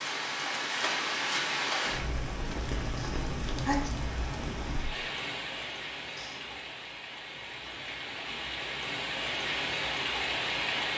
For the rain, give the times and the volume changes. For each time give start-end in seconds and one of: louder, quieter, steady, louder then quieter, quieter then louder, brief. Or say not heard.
0.0-10.9 quieter then louder.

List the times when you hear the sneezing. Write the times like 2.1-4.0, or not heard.
3.0-4.0, 6.0-6.8.